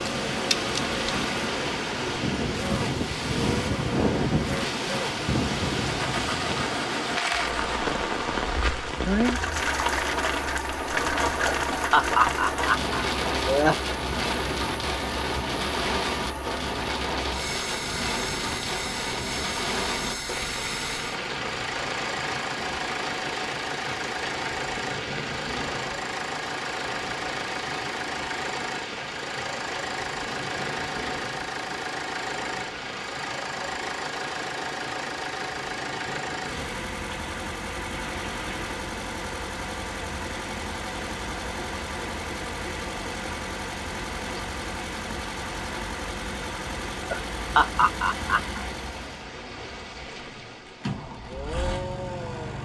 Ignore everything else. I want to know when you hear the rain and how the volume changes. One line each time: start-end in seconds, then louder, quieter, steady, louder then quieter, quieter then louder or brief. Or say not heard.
0.0-52.6 quieter.